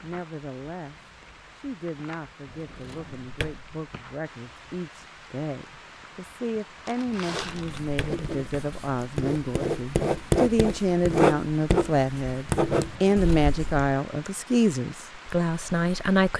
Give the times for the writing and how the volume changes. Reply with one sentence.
You can hear the writing from 7.3 to 13.9 s, getting louder.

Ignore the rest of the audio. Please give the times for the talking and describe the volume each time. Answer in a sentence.
The talking can be heard from 0.0 to 16.3 s, getting louder.